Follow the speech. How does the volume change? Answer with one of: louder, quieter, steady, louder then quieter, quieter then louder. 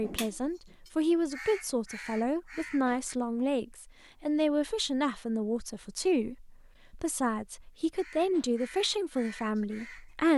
steady.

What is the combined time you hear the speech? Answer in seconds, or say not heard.
10 s.